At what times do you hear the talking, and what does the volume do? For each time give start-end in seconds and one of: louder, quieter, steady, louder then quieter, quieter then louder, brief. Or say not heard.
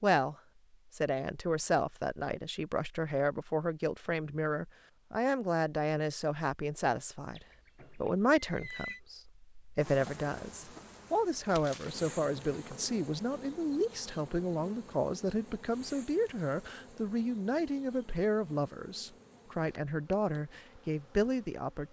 0.0-21.8 steady.